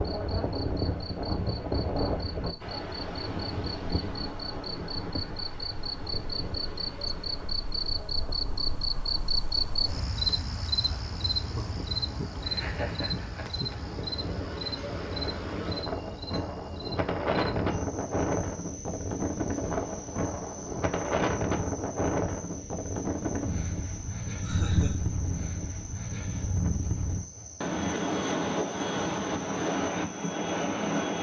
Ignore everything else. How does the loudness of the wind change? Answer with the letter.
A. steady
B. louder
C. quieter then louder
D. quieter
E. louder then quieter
C.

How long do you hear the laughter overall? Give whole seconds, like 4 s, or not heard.
2 s.